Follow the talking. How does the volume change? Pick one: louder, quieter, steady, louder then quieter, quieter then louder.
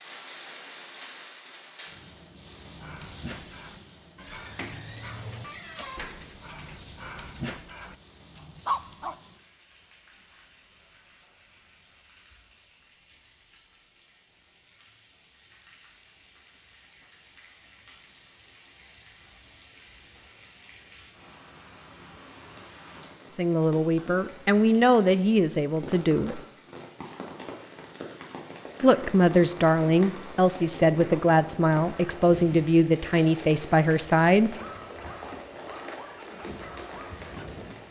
steady.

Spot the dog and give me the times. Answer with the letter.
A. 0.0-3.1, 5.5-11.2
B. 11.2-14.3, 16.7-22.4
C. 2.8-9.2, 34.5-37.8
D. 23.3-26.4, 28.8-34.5
C.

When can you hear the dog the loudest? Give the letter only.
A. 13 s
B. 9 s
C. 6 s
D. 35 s
B.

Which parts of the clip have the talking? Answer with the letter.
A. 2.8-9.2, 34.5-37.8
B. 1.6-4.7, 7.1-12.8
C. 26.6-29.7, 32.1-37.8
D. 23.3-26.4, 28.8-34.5
D.